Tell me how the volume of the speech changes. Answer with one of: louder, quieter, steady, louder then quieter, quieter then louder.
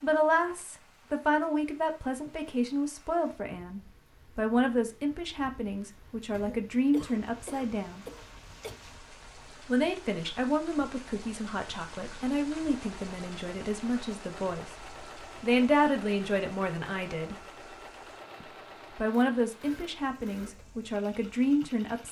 steady.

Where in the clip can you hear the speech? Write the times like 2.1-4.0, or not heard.
0.0-8.1, 9.7-17.4, 18.4-22.0.